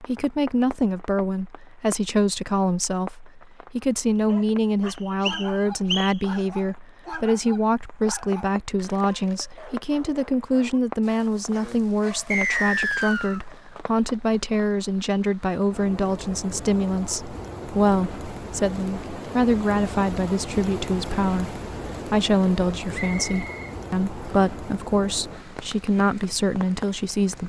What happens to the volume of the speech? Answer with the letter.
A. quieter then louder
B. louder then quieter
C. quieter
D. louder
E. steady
E.